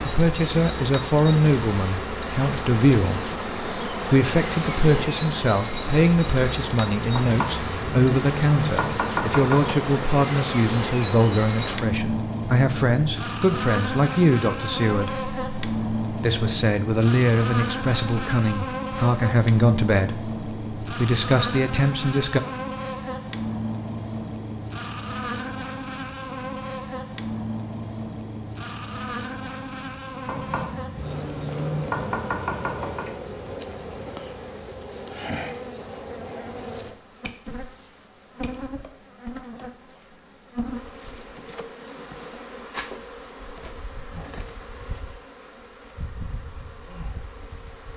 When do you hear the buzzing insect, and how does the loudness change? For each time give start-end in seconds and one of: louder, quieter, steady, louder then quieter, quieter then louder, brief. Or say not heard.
0.0-47.9 quieter.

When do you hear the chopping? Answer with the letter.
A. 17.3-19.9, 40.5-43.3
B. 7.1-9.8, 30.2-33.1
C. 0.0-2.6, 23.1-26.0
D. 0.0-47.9
B.